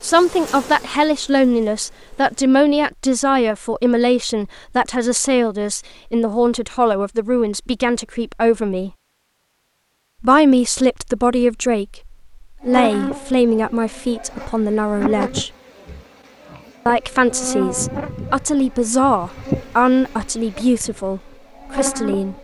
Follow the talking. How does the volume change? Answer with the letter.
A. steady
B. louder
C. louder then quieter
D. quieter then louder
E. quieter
A.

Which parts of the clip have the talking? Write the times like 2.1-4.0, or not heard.
0.0-8.9, 10.2-15.5, 16.9-22.3.